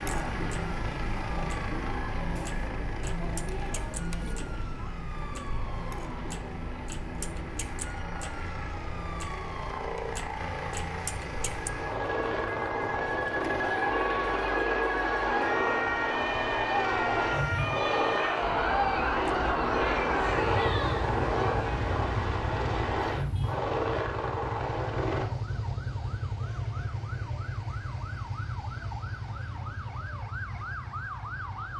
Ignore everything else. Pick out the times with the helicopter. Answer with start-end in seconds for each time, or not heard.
0.0-25.2.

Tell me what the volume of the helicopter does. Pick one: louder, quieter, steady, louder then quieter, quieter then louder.
louder.